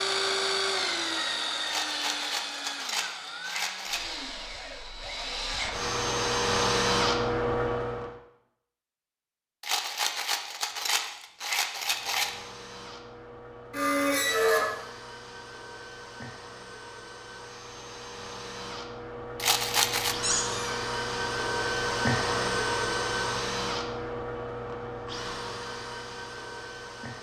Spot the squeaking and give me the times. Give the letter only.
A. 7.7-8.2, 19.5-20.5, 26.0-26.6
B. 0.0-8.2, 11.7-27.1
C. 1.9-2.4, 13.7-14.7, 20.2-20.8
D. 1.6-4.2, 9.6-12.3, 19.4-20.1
C.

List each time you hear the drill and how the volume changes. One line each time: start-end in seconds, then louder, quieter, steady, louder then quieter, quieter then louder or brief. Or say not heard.
0.0-8.2 quieter then louder
11.7-27.1 louder then quieter.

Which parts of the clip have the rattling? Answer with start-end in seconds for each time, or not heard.
1.6-4.2, 9.6-12.3, 19.4-20.1.